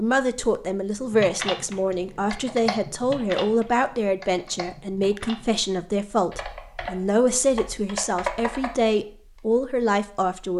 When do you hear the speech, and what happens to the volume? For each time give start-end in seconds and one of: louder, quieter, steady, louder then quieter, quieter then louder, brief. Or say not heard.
0.0-10.5 steady.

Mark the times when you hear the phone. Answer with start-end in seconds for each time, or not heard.
not heard.